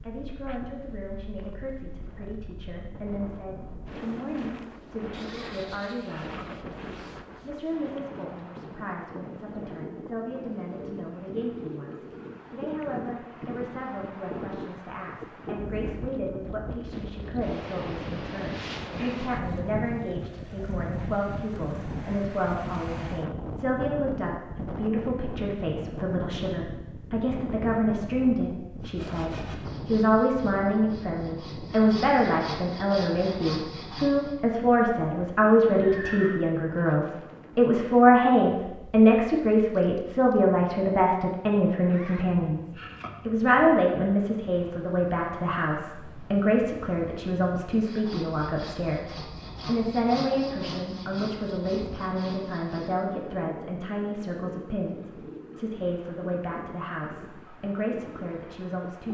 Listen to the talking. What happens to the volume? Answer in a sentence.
The volume of the talking goes up, then down.